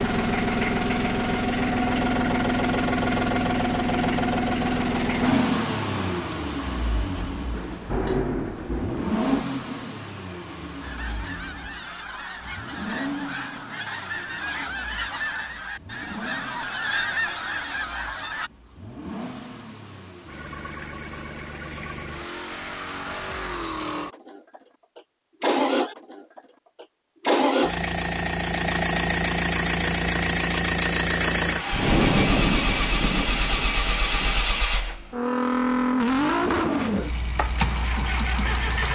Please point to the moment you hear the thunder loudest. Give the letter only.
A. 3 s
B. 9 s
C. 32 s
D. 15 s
C.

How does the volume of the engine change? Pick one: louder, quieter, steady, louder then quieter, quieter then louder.
quieter then louder.